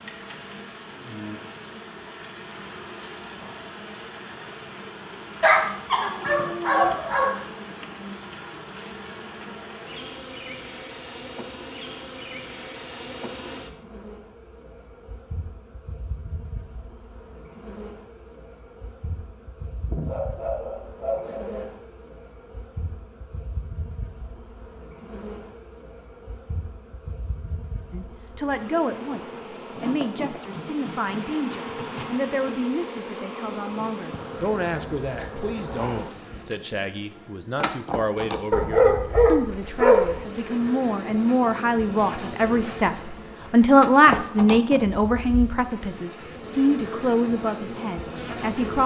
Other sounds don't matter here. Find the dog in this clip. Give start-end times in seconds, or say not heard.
5.4-7.4, 19.9-21.7, 38.5-40.2.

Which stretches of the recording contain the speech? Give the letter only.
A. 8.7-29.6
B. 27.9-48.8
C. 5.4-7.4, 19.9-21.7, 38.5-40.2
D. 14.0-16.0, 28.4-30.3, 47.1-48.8
B.